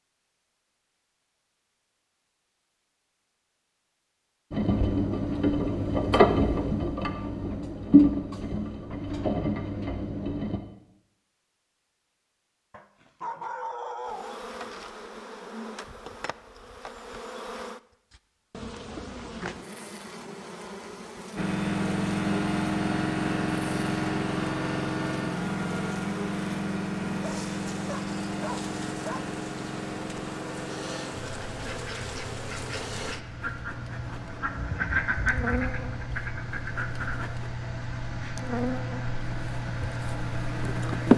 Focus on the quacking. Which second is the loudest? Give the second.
35 s.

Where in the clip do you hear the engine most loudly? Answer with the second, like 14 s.
8 s.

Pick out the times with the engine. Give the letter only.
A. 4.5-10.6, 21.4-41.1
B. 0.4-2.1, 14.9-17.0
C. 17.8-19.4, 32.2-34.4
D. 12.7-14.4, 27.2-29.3
A.